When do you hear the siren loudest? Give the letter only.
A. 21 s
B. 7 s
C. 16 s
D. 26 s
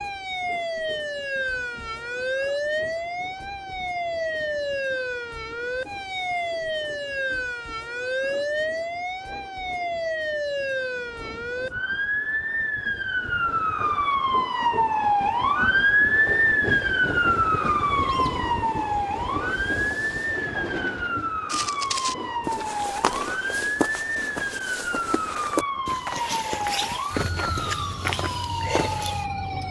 C.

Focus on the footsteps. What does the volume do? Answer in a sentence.
The volume of the footsteps stays about the same.